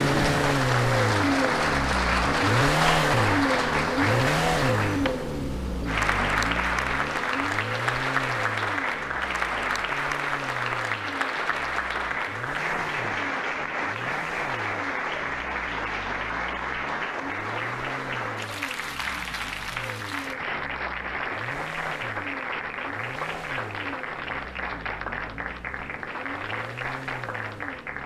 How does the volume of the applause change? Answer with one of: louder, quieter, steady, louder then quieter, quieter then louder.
quieter.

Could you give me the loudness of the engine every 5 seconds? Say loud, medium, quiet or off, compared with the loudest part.
loud, medium, quiet, quiet, quiet, quiet.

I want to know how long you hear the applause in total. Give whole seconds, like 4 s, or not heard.
28 s.